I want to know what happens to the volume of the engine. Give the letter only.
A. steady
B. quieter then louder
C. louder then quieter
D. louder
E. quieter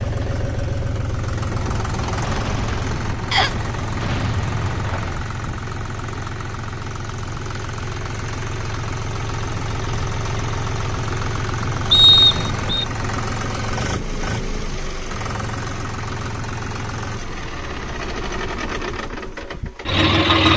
A.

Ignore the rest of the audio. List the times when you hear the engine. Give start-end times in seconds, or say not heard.
0.0-20.5.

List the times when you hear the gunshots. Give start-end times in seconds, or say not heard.
1.5-5.3.